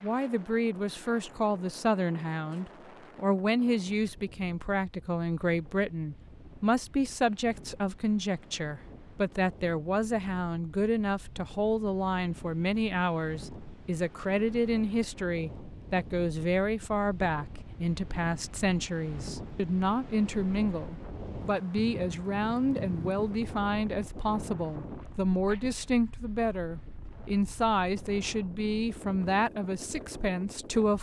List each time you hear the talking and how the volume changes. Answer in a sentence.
The talking can be heard from 0.0 to 30.9 s, at a steady volume.